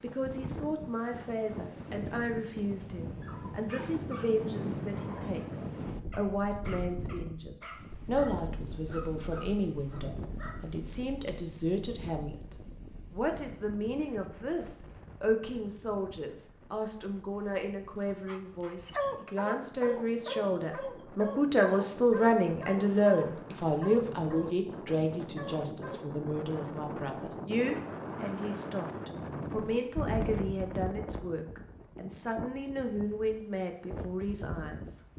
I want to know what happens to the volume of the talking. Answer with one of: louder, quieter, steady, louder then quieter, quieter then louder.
louder then quieter.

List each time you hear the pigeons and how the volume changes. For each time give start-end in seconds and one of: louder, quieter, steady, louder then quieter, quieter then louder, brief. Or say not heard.
not heard.